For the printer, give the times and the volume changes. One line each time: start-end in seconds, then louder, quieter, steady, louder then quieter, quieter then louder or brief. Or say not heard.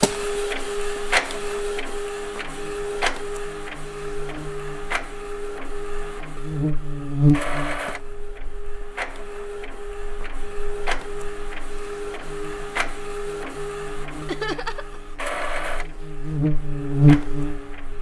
0.0-17.9 quieter.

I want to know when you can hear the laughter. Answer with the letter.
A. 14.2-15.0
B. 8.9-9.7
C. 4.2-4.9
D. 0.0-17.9
A.